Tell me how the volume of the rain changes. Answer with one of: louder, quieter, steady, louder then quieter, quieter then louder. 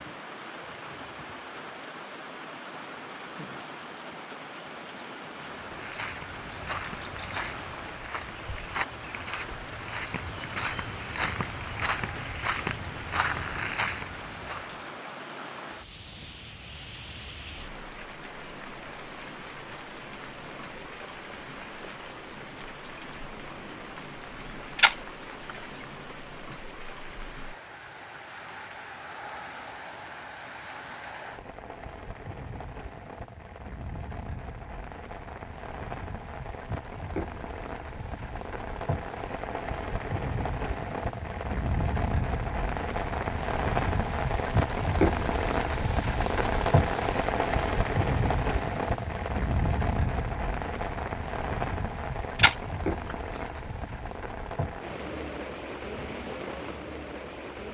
louder.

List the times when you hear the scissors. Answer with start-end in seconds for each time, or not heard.
24.8-25.9, 52.4-53.6.